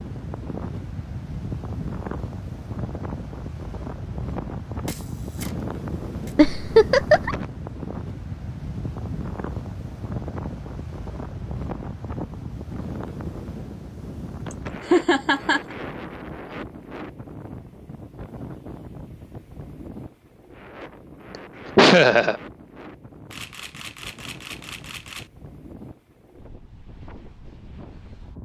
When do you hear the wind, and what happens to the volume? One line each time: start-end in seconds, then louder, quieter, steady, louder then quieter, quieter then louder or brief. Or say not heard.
0.0-28.4 quieter.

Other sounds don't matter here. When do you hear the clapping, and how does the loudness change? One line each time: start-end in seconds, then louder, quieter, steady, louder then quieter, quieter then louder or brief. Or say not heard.
not heard.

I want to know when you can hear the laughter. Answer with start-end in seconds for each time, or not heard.
6.3-7.3, 14.5-15.8, 21.8-22.4.